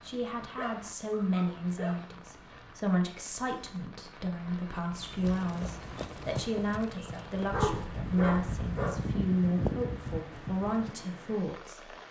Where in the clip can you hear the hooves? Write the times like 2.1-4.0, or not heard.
5.0-10.9.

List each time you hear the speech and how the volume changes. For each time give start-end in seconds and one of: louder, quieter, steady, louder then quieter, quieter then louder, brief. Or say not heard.
0.0-11.9 steady.